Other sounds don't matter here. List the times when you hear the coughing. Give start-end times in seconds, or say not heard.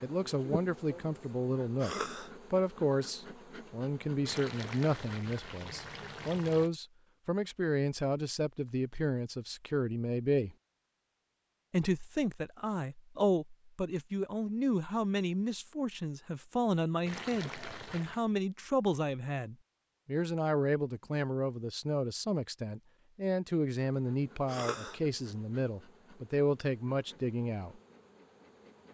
1.8-2.3, 24.4-25.0.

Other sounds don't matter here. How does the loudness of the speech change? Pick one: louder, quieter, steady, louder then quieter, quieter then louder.
steady.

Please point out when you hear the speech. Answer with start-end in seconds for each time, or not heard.
0.0-10.6, 11.7-27.8.